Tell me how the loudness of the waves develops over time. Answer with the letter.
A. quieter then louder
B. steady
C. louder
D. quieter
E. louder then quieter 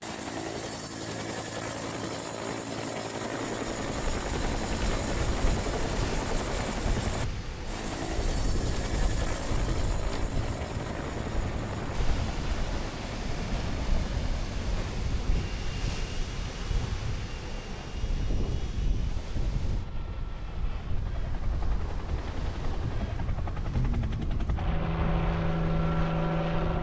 B.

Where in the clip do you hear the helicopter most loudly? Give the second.
26 s.